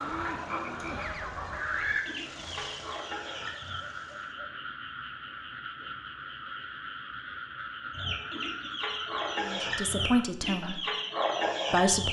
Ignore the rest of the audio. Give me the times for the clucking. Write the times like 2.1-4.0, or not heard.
0.0-3.8, 7.9-12.0.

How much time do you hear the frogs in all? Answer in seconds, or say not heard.
12 s.